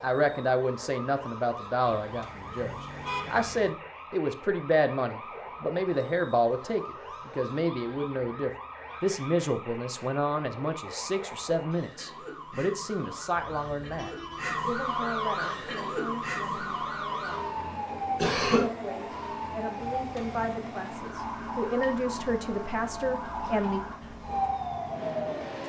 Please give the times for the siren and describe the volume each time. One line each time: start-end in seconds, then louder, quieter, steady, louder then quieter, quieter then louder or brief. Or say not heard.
0.0-25.6 louder.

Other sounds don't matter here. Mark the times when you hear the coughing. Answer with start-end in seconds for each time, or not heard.
18.1-18.6.